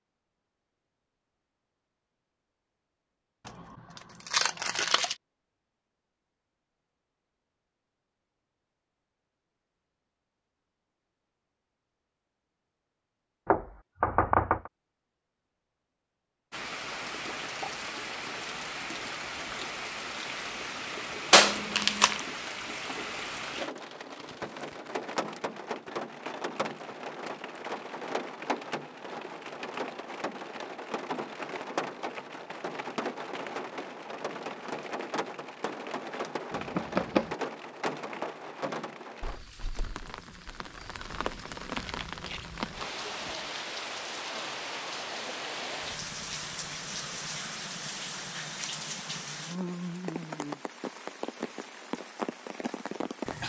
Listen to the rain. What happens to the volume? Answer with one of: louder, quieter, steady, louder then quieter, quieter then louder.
steady.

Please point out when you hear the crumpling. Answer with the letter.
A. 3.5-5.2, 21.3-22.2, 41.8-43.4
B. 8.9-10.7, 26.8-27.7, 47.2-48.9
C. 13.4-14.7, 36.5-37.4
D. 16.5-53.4
A.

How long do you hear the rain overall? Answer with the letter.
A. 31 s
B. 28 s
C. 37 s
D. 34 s
C.